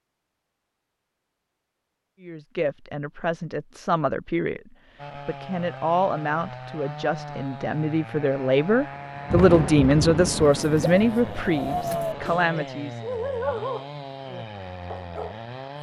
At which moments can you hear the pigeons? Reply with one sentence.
You can hear the pigeons from 10.6 to 12.5 s.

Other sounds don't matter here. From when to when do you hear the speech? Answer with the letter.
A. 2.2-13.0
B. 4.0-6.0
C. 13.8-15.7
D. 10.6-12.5
A.